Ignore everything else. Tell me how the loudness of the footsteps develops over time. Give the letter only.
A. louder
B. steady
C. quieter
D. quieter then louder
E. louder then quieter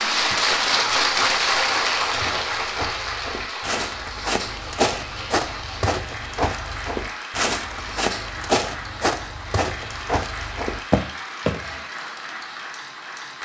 A.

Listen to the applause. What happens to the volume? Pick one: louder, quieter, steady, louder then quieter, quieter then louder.
quieter.